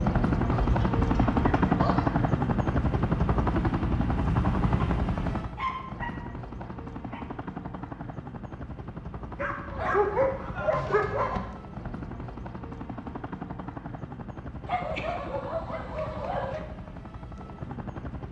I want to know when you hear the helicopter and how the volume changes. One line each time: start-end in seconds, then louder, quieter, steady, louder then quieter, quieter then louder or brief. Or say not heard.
0.0-18.2 quieter.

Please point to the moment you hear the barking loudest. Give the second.
10 s.